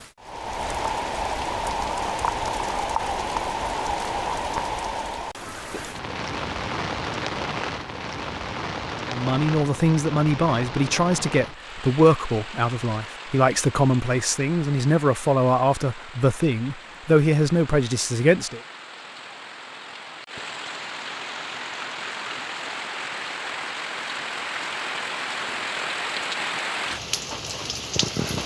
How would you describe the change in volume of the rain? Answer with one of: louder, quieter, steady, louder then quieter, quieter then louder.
quieter then louder.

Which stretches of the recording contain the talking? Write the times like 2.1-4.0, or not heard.
9.1-18.6.